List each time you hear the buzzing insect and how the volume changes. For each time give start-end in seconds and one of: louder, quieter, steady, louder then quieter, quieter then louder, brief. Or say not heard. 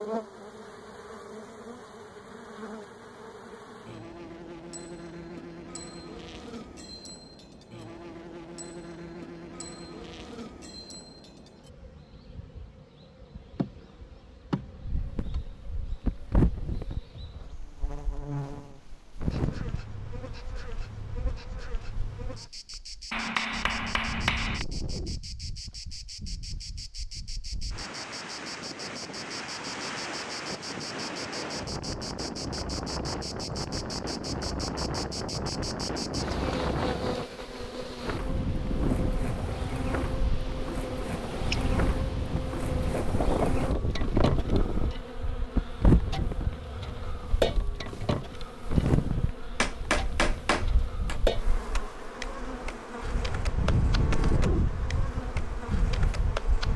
0.0-56.7 louder.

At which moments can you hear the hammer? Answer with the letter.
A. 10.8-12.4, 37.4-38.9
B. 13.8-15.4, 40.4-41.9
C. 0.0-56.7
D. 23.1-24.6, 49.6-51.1
D.